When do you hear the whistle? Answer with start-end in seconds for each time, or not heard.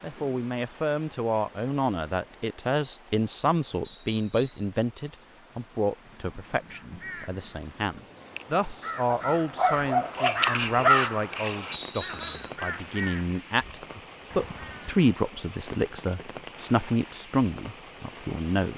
3.8-4.7, 11.7-12.6.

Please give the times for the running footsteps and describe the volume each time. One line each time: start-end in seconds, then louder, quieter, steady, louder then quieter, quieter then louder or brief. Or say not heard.
not heard.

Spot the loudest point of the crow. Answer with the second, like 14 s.
11 s.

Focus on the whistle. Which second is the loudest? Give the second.
12 s.